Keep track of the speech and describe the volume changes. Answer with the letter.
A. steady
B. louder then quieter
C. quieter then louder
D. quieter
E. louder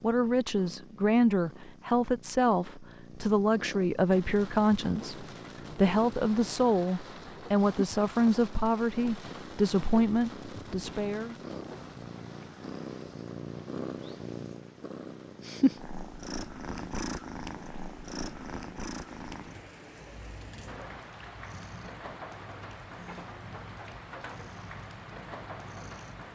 A.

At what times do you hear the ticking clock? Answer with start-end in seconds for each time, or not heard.
not heard.